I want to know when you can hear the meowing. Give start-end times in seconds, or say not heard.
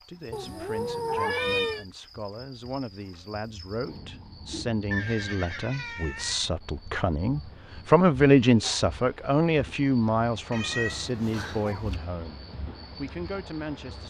0.3-1.9, 5.5-6.5, 10.5-12.0.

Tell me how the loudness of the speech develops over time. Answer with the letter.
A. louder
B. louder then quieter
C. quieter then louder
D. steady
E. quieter
B.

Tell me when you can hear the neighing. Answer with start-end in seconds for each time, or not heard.
4.9-5.7.